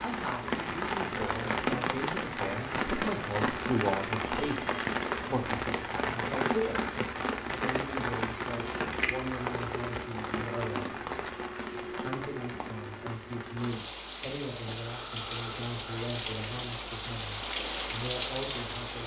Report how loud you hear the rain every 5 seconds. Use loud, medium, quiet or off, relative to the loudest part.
loud, loud, medium, loud.